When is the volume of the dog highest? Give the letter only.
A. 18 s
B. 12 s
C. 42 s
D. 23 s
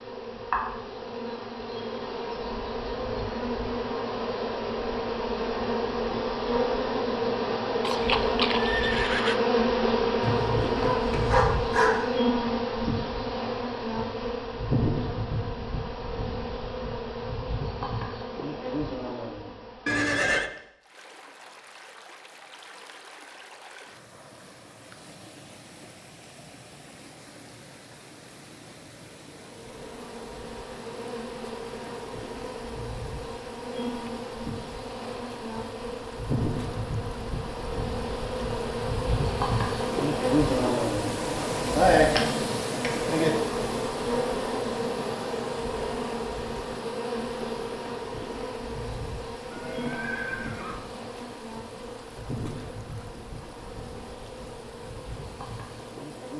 B.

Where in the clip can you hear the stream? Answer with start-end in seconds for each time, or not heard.
20.8-56.3.